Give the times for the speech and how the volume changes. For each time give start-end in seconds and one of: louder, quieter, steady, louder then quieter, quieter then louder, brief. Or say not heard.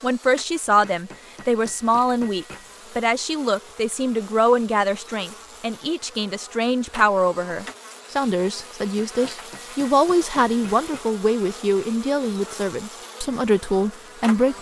0.0-14.5 steady.